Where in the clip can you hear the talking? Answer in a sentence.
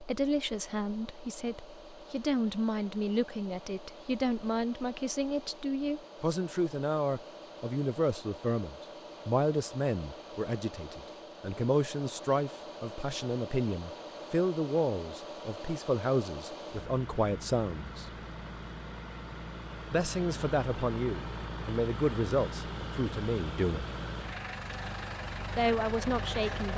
The talking can be heard from 0.0 to 18.1 s, from 19.9 to 23.9 s and from 25.6 to 26.7 s.